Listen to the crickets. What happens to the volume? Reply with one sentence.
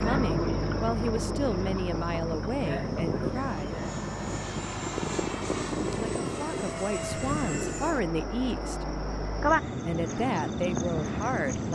The volume of the crickets goes down, then up.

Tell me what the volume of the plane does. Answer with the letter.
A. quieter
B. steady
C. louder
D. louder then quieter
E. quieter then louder
A.